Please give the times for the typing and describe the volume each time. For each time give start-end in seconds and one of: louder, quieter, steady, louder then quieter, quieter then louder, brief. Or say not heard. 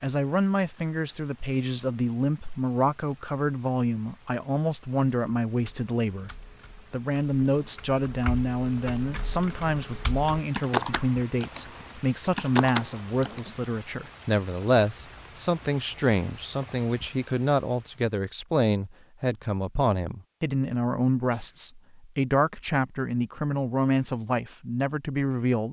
5.5-13.4 louder.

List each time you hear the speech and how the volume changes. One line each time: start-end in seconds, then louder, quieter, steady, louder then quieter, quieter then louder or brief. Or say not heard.
0.0-25.6 steady.